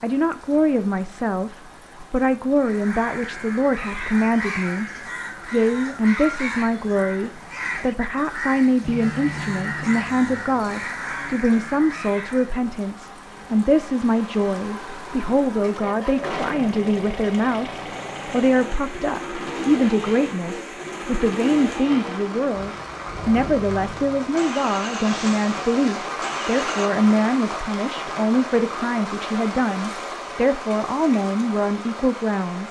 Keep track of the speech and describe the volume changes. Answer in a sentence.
The volume of the speech stays about the same.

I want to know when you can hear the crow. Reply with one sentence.
The crow can be heard from 2.6 to 12.6 s.